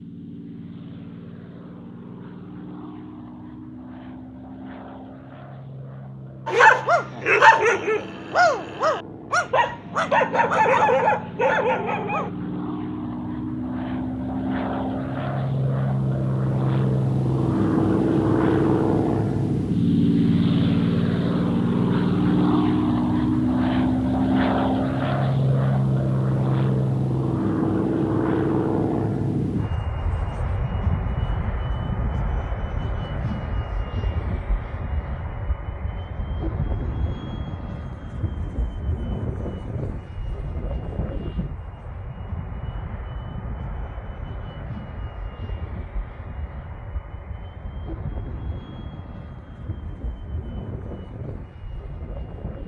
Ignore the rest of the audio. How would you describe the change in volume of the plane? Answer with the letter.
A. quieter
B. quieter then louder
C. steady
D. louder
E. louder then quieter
E.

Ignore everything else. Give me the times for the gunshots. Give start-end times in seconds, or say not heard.
not heard.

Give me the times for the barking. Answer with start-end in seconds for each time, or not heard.
6.5-12.3.